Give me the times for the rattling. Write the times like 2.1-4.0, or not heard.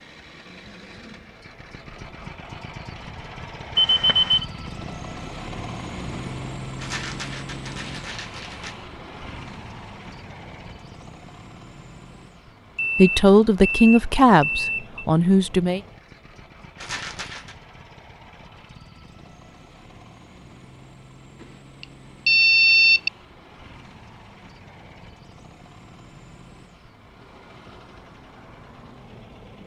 6.8-8.8, 16.8-17.6.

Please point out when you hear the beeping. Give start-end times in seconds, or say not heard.
3.8-4.5, 12.8-15.0, 22.2-23.1.